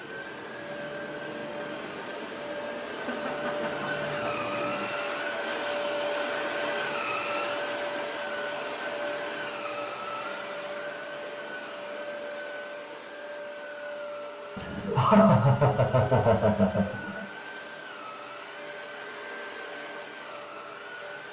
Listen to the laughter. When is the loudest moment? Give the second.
15 s.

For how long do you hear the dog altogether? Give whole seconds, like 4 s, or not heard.
not heard.